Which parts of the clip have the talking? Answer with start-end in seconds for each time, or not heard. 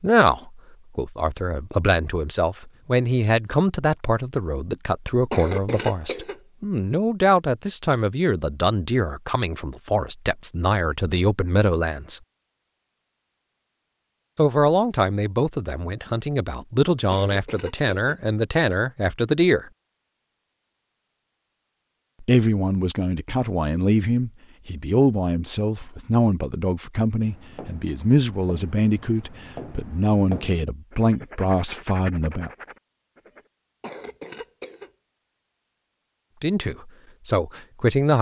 0.0-12.2, 14.3-19.6, 22.2-32.5, 36.4-38.1.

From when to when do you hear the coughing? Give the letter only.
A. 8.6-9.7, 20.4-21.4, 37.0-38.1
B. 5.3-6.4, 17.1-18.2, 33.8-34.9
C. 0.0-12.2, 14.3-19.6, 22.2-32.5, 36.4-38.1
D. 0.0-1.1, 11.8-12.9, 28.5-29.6
B.